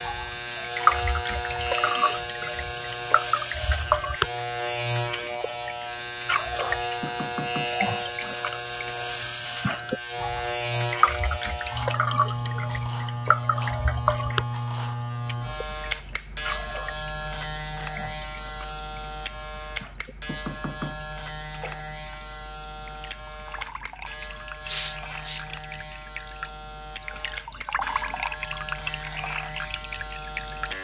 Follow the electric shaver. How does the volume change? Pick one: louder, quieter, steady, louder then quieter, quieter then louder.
quieter.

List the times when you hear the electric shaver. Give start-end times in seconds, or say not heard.
0.0-30.7.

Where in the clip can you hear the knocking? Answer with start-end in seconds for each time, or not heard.
7.0-7.8, 20.2-21.1.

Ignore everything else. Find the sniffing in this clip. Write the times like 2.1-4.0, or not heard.
1.3-3.0, 14.6-15.0, 24.6-25.4.